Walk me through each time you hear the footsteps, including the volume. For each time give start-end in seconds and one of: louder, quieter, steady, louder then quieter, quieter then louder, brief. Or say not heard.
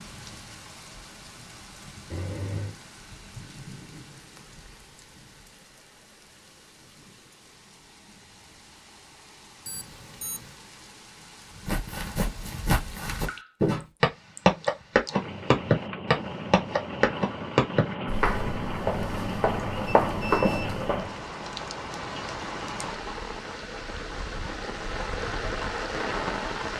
11.7-21.2 louder then quieter.